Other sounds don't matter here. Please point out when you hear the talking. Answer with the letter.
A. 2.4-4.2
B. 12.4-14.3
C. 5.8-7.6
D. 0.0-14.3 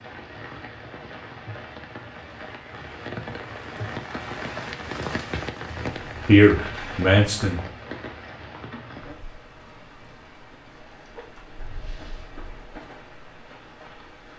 C.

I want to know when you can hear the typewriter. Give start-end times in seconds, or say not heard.
not heard.